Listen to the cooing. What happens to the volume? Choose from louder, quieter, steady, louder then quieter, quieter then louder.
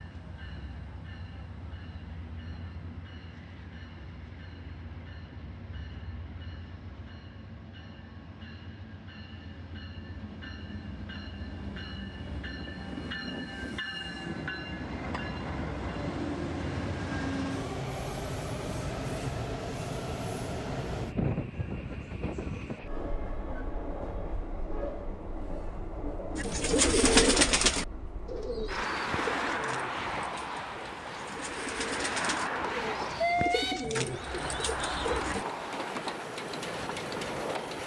quieter then louder.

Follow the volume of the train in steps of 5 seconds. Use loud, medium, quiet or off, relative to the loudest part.
quiet, quiet, medium, loud, loud, loud, loud, loud.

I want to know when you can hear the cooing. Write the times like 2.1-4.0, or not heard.
26.4-35.5.